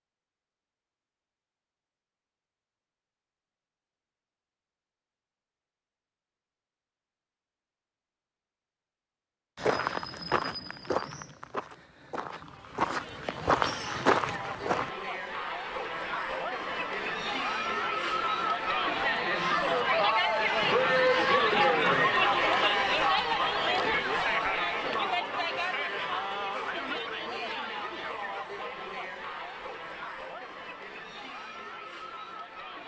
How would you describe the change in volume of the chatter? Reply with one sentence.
The loudness of the chatter goes up, then down.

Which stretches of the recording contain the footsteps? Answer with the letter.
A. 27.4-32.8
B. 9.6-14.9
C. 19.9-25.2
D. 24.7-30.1
B.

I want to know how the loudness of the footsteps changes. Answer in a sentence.
The volume of the footsteps goes down, then up.